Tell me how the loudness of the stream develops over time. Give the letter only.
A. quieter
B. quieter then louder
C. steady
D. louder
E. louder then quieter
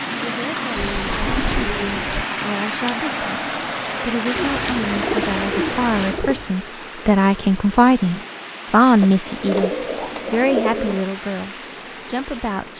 A.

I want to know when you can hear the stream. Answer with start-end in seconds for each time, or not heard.
0.0-12.7.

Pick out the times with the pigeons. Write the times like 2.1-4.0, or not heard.
0.8-2.2, 4.3-6.5, 9.0-11.1.